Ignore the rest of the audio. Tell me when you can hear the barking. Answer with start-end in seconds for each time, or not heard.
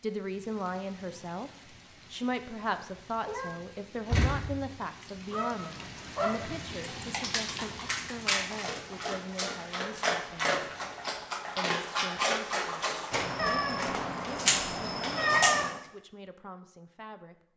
5.3-15.7.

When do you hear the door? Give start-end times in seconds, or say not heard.
4.0-4.7.